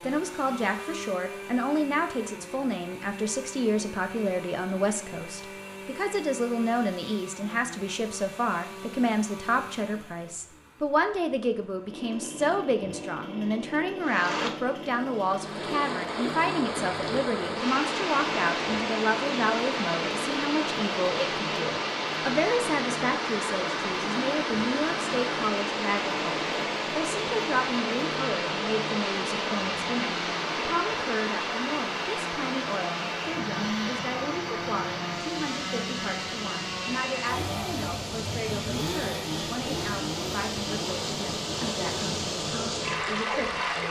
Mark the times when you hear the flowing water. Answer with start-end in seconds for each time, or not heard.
14.0-43.8.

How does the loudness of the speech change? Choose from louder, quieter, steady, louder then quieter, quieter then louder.
quieter.